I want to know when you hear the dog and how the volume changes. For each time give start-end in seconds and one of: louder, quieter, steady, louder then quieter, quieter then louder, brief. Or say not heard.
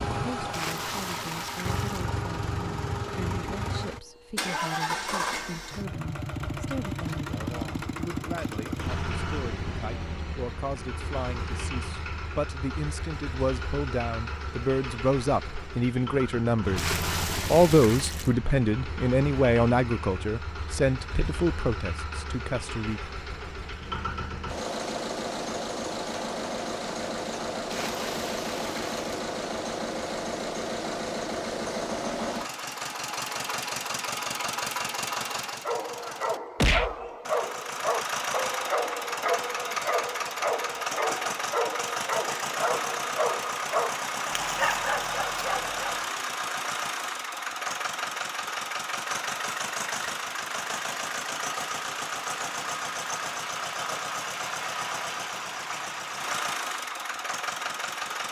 35.6-46.0 steady.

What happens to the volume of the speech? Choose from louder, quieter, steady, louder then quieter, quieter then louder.
louder.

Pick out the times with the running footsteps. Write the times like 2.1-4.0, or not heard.
not heard.